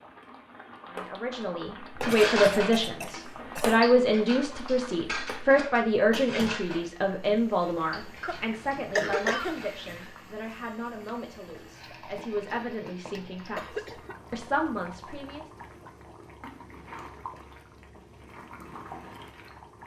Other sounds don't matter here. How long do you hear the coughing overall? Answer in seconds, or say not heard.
4 s.